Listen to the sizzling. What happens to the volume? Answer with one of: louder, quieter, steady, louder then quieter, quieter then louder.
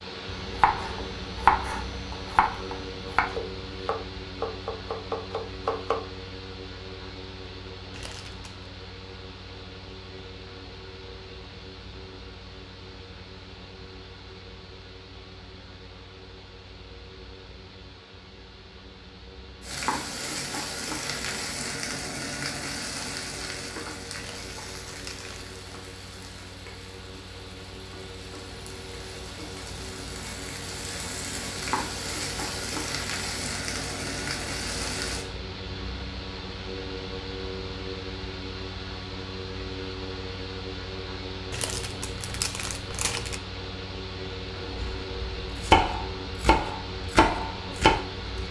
quieter then louder.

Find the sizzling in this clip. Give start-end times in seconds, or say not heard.
19.6-35.2.